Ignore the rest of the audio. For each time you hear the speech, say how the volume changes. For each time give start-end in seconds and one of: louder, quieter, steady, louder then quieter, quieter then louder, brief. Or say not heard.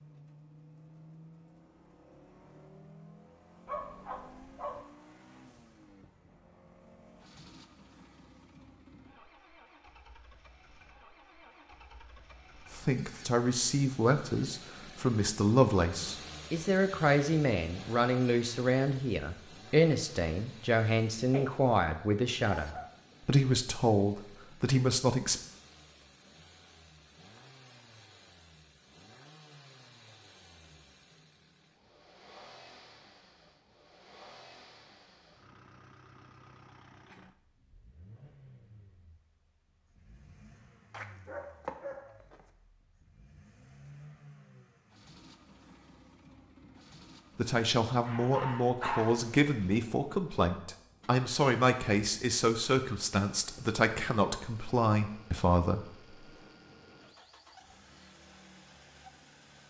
12.7-25.4 steady
47.4-56.1 steady.